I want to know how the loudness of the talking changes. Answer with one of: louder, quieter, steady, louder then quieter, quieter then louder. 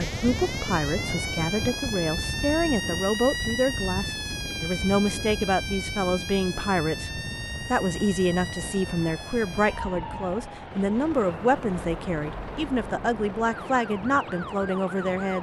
steady.